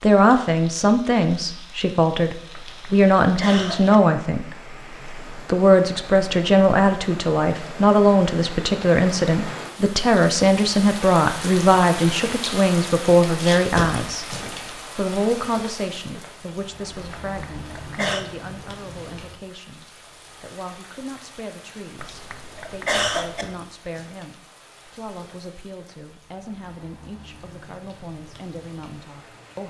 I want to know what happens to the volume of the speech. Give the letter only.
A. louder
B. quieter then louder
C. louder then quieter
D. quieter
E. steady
D.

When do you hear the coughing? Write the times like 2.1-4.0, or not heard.
2.5-4.0, 17.2-18.2, 21.9-23.4.